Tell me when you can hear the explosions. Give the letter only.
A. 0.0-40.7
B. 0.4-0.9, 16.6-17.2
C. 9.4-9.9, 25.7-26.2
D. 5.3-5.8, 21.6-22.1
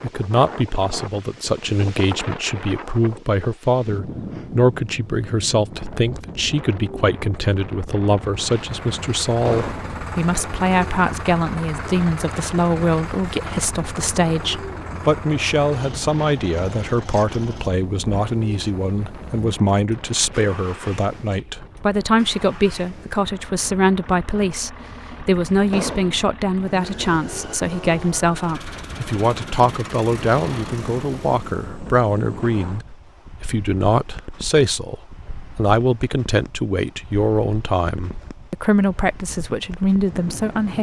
C.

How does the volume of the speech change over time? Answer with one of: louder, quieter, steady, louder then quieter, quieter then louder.
steady.